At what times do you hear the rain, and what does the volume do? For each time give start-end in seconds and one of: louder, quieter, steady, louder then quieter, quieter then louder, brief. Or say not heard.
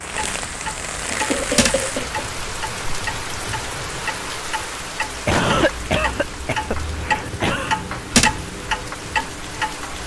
0.0-10.0 quieter.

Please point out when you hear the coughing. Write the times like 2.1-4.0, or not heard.
1.1-2.2, 5.2-7.8.